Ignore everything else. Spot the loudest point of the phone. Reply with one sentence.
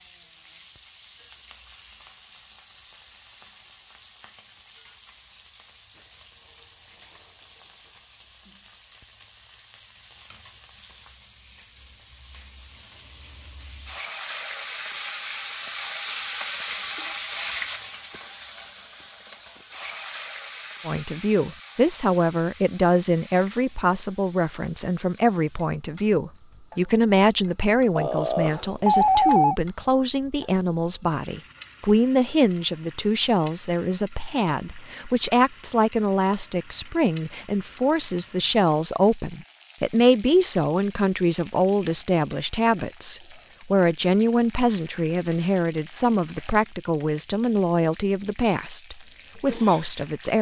The volume of the phone peaks at 29 seconds.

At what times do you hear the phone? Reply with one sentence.
The phone can be heard from 27.9 to 29.6 s.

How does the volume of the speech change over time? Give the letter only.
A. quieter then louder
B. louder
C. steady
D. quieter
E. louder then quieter
C.